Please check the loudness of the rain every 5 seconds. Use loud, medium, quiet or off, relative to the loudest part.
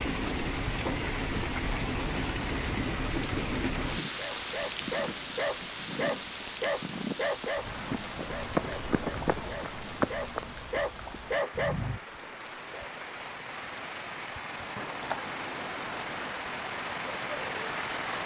loud, medium, medium, loud.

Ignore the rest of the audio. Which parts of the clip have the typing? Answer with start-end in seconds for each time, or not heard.
14.8-16.4.